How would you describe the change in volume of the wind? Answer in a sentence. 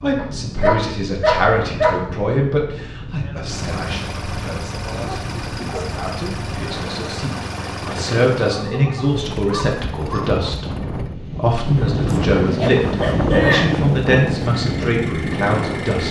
The volume of the wind goes up.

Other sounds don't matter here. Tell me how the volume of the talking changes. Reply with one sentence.
The volume of the talking goes down, then up.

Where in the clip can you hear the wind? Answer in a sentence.
You can hear the wind from 0.0 to 16.0 s.